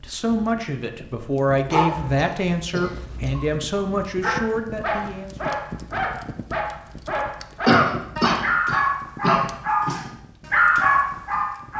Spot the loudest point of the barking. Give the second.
11 s.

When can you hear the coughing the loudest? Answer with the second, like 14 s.
8 s.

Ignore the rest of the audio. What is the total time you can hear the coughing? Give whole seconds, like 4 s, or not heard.
4 s.